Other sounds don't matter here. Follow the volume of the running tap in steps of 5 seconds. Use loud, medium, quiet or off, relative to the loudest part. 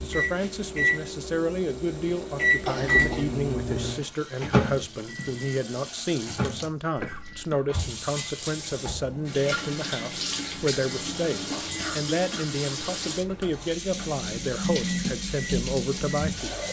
quiet, medium, loud, loud.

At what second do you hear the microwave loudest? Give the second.
3 s.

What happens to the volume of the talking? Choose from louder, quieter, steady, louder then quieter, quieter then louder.
steady.